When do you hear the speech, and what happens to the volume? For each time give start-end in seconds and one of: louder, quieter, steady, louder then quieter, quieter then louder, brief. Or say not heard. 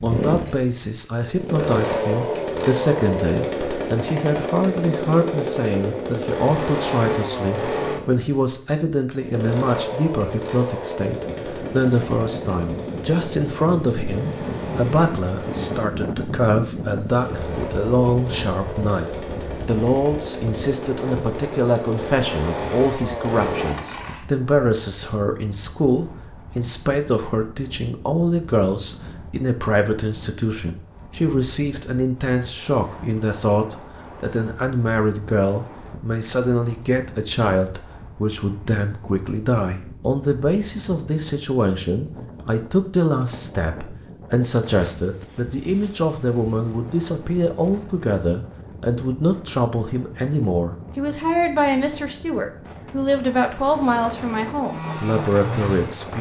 0.0-56.1 steady.